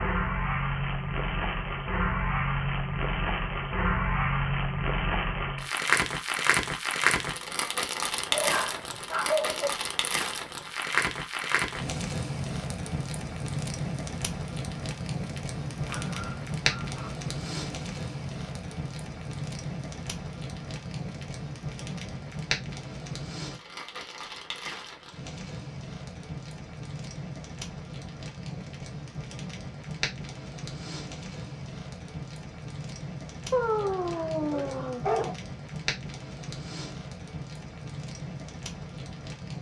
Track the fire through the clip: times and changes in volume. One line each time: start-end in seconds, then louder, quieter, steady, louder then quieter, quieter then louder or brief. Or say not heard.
0.0-39.5 quieter.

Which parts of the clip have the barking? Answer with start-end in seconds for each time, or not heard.
8.3-9.7, 15.7-17.1, 33.5-35.4.